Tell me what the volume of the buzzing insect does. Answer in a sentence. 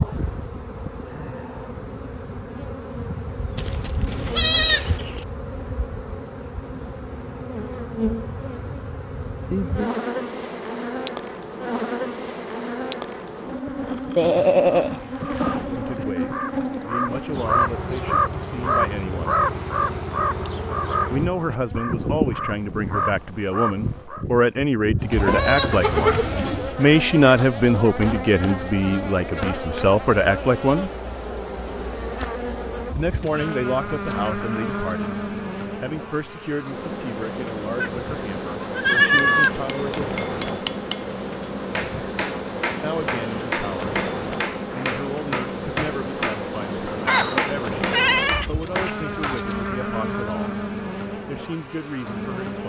The loudness of the buzzing insect stays about the same.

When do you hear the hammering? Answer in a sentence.
You can hear the hammering from 39.2 to 49.5 s.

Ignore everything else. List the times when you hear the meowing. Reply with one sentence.
You can't hear the meowing here.